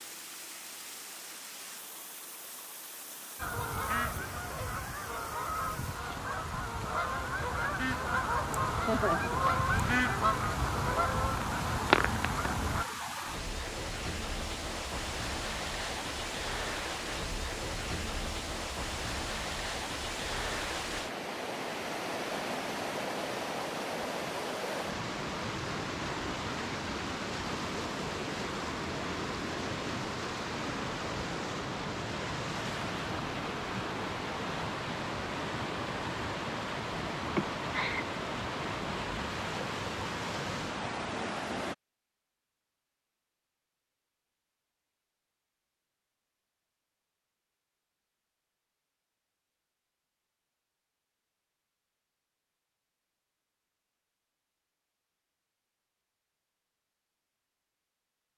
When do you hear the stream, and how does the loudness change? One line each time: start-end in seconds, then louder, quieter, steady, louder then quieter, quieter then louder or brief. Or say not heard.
0.0-41.8 louder.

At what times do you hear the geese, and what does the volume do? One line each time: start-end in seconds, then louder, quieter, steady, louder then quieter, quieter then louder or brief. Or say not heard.
3.4-12.8 louder.